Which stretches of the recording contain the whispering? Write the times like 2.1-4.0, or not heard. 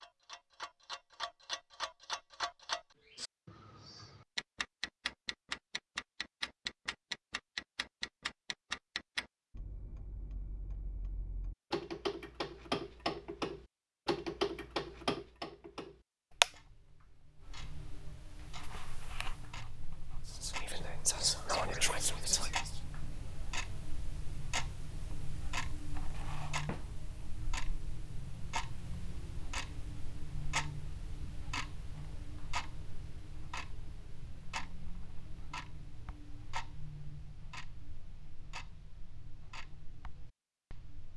20.2-22.8.